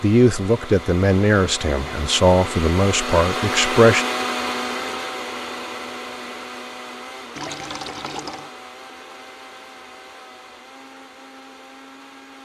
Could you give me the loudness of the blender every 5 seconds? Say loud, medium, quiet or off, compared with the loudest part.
loud, medium, quiet.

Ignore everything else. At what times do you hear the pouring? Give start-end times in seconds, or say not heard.
7.3-8.5.